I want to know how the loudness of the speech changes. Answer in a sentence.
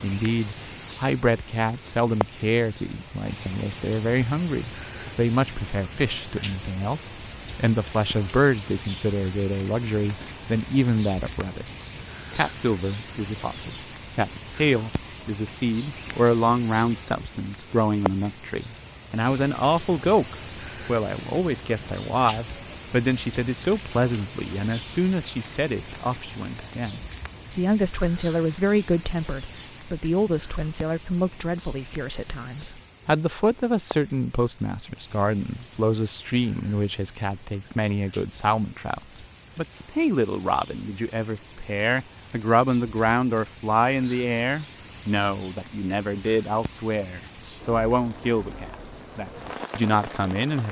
The volume of the speech stays about the same.